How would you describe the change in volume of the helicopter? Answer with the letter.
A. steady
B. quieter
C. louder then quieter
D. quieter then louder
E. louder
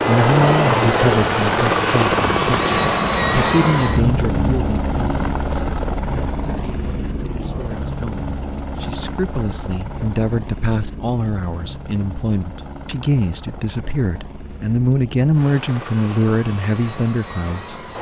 B.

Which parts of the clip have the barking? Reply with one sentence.
The barking can't be heard in this clip.